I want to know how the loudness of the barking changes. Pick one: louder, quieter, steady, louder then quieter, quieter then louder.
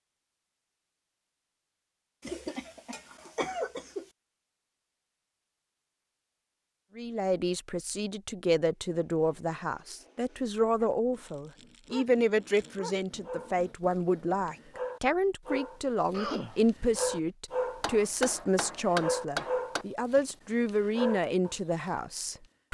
louder.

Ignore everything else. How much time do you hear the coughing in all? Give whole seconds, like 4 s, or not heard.
3 s.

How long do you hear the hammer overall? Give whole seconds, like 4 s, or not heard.
2 s.